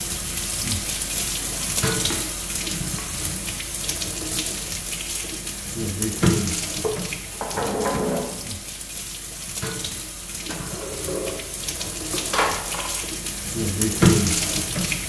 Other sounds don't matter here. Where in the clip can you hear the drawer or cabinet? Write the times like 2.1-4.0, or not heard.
1.2-2.2, 6.8-8.3, 10.4-13.0.